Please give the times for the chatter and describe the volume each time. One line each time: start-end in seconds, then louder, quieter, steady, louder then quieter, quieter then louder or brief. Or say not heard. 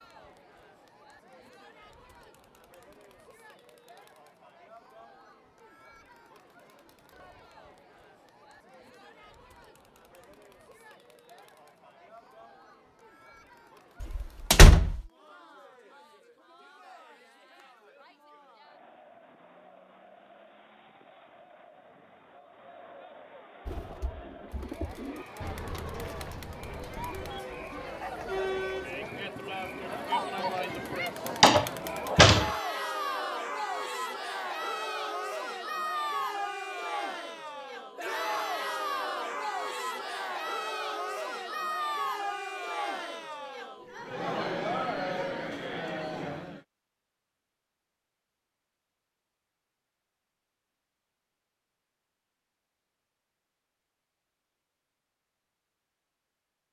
0.0-46.6 louder.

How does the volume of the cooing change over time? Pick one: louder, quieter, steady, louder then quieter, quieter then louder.
quieter.